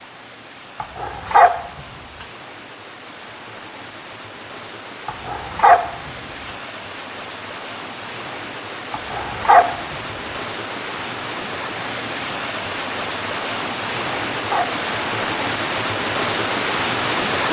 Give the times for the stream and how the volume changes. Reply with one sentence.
You can hear the stream from 0.0 to 17.4 s, getting louder.